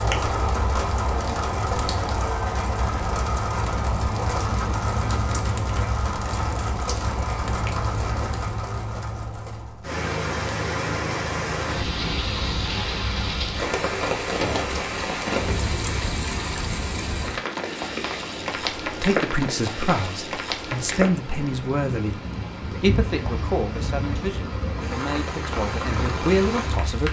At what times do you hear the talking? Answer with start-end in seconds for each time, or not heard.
18.9-27.0.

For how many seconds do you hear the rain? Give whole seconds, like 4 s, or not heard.
27 s.